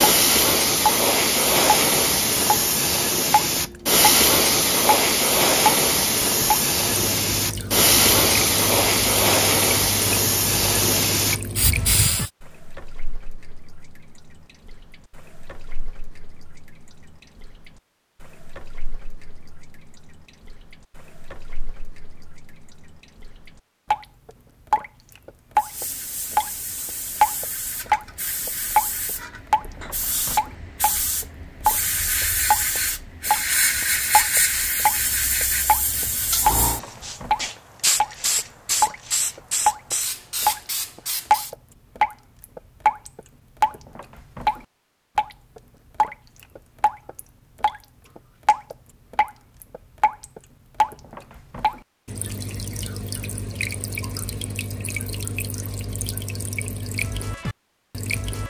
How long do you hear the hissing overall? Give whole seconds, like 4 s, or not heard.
28 s.